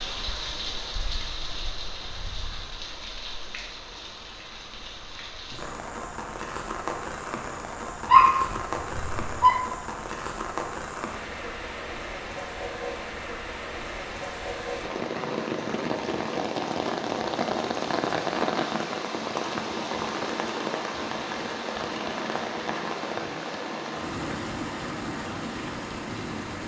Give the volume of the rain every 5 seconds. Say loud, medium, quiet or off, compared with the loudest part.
medium, medium, medium, loud, loud, medium.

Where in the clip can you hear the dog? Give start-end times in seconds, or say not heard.
8.1-9.6.